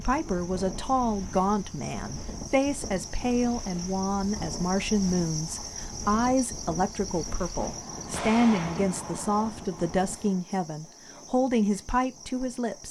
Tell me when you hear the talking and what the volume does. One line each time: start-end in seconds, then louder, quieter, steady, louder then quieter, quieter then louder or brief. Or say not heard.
0.0-12.8 steady.